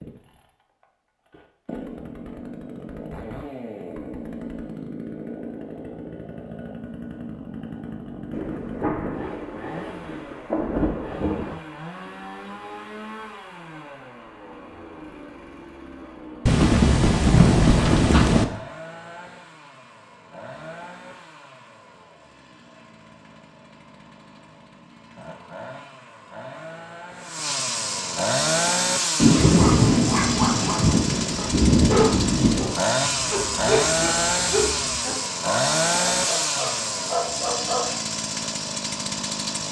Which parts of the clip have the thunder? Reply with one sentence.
The thunder can be heard from 8.3 to 11.6 s, from 16.4 to 18.4 s and from 29.2 to 32.8 s.